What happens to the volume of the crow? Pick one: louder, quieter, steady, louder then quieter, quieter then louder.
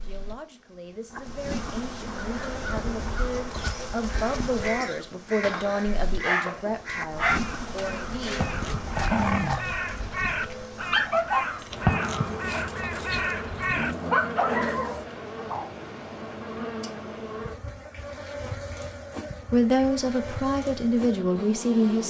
louder.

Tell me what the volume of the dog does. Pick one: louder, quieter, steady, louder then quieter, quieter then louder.
quieter then louder.